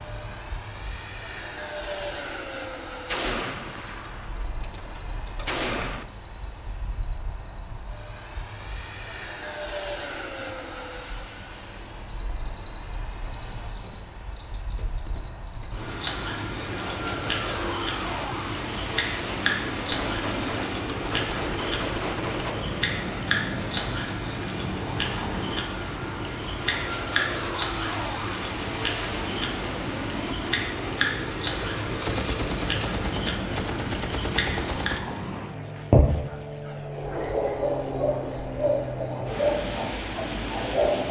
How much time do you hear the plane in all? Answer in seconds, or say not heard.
41 s.